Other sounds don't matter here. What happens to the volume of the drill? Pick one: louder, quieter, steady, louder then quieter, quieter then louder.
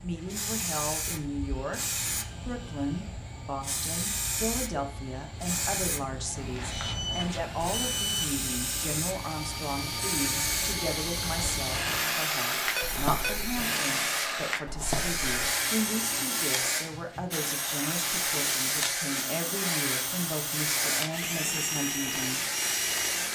louder.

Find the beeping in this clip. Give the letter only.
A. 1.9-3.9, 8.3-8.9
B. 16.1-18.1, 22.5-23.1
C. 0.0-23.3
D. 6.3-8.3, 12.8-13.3
D.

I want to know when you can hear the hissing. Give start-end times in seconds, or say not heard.
0.0-23.3.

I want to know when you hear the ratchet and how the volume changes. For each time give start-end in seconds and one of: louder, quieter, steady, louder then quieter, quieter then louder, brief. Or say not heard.
not heard.